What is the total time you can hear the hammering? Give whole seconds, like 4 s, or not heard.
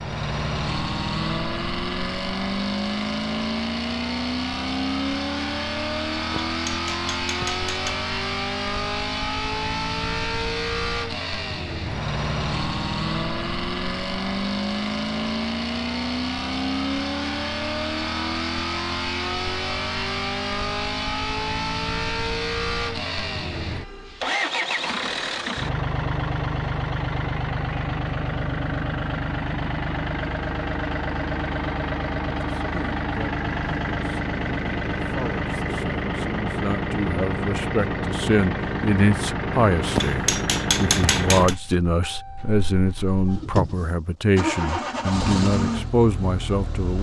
3 s.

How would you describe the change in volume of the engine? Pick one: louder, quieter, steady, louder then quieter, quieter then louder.
steady.